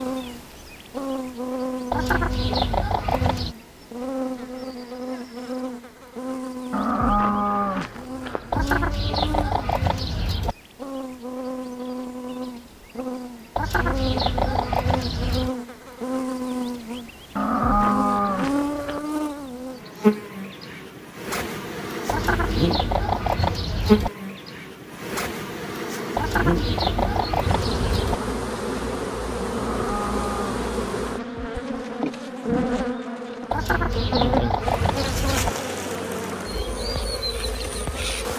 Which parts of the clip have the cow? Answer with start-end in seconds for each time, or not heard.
6.7-8.7, 17.4-19.0, 29.5-31.5.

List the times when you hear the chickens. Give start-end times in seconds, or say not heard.
1.9-3.5, 8.5-10.6, 13.6-15.5, 22.1-24.1, 26.1-28.2, 33.5-35.5.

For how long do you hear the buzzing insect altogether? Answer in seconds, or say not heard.
38 s.